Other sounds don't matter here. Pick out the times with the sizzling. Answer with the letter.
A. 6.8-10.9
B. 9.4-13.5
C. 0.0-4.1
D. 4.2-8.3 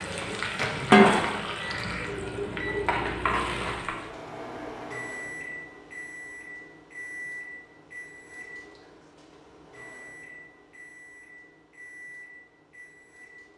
C.